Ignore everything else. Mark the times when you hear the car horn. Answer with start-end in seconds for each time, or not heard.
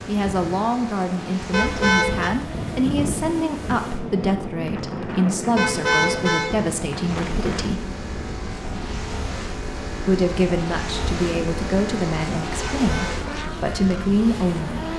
1.5-2.3, 5.5-6.5, 12.8-13.3.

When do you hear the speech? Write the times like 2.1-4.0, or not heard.
0.1-7.8, 10.1-14.8.